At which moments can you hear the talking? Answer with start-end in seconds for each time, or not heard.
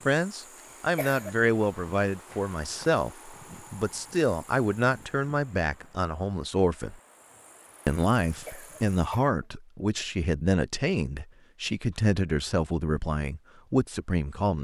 0.1-7.0, 7.8-14.5.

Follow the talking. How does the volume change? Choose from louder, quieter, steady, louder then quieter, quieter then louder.
steady.